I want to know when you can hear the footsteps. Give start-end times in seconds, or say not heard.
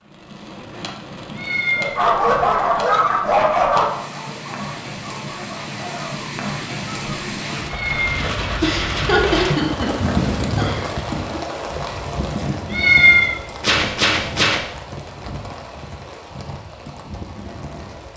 not heard.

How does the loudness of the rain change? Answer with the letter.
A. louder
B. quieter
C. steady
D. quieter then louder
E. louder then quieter
E.